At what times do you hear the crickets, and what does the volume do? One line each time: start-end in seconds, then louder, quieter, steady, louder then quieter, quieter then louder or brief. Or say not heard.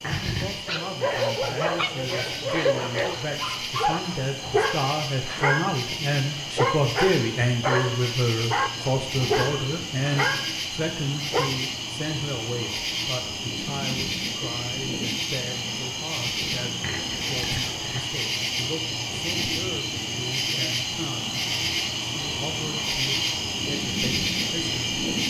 0.0-25.2 louder.